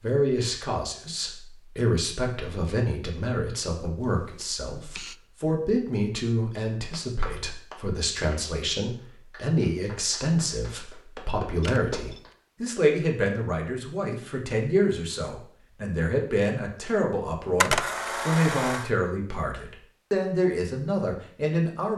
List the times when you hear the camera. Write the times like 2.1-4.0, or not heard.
4.0-5.2, 11.6-12.3, 17.6-18.9.